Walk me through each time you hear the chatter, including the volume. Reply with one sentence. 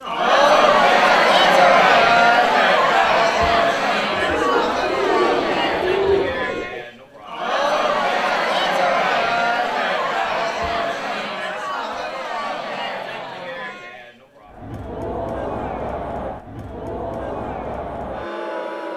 The chatter can be heard from 0.0 to 18.9 s, getting quieter.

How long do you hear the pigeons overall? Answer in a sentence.
The pigeons can be heard for 3 seconds in total.